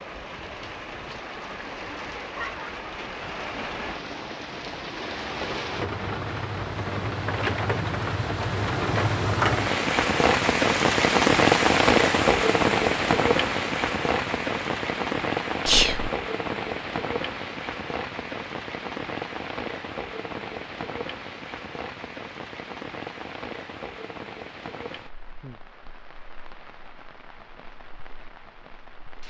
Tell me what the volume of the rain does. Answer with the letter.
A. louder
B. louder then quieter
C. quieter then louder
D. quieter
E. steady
B.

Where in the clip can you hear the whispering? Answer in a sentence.
You can hear the whispering from 15.7 to 16.1 s.